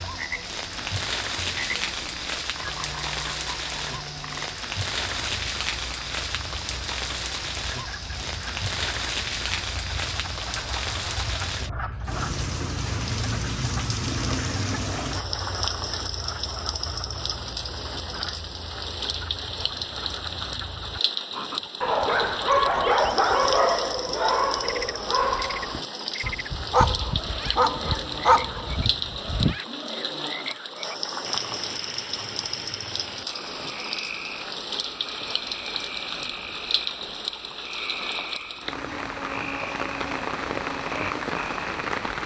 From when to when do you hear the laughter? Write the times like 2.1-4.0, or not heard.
not heard.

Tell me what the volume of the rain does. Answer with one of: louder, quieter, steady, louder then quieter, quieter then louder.
steady.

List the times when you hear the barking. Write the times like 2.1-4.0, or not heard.
21.8-29.6.